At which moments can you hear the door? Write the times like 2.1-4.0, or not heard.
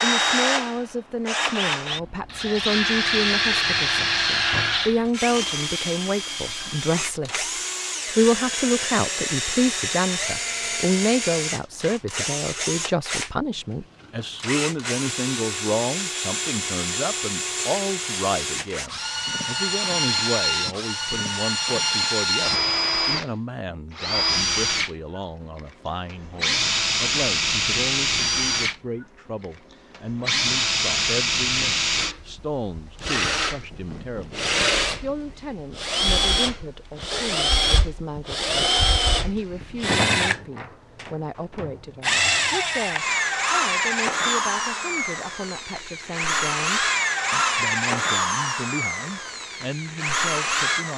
not heard.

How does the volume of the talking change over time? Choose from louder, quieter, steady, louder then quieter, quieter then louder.
quieter.